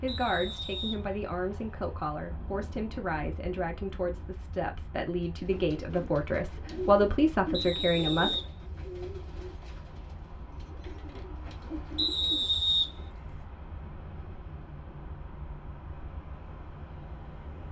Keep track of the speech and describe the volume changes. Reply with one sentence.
The volume of the speech goes up.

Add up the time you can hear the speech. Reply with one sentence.
You can hear the speech for 8 seconds altogether.